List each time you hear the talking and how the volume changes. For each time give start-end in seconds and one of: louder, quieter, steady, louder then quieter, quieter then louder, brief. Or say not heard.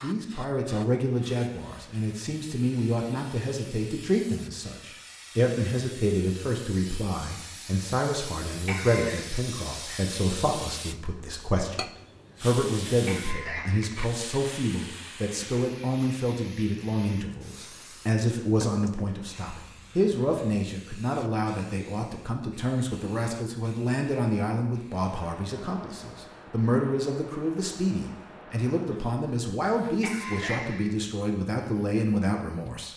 0.0-32.9 steady.